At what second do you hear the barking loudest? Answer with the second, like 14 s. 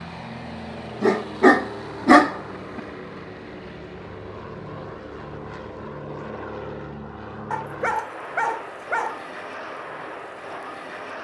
2 s.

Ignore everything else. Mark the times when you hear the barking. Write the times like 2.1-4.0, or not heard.
1.0-2.8, 7.5-9.2.